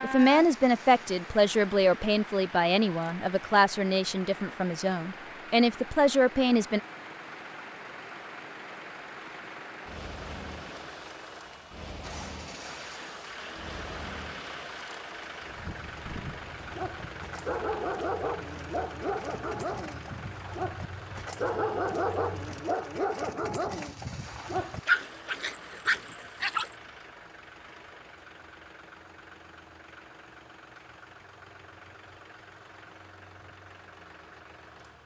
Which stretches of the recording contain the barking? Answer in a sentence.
The barking can be heard from 16.6 to 26.7 s.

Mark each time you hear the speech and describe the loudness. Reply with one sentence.
The speech can be heard from 0.0 to 6.8 s, getting quieter then louder.